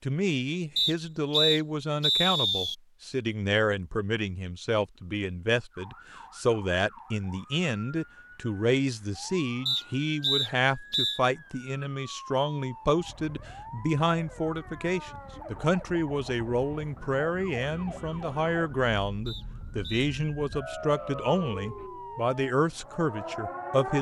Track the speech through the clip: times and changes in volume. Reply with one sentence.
You can hear the speech from 0.0 to 23.9 s, at a steady volume.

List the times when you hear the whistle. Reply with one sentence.
The whistle can be heard from 0.8 to 2.8 s, from 9.7 to 11.2 s and from 19.2 to 20.1 s.